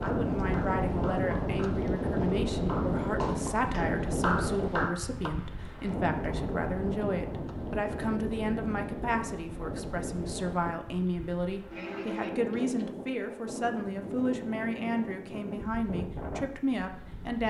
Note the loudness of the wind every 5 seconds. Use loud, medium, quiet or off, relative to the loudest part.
loud, medium, medium, medium.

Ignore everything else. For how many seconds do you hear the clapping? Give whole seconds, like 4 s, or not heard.
5 s.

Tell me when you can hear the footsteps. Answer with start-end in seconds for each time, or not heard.
not heard.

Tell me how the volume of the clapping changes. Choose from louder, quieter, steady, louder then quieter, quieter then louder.
louder.